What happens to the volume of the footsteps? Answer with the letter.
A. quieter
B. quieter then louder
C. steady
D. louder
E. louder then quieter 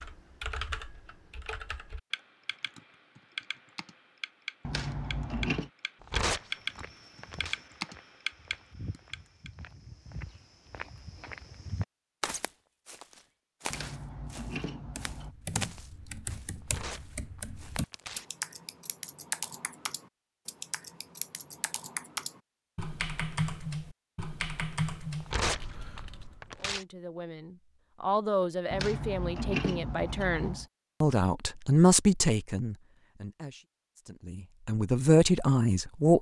D.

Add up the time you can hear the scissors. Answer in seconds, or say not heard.
5 s.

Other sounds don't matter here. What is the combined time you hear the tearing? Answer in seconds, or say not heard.
5 s.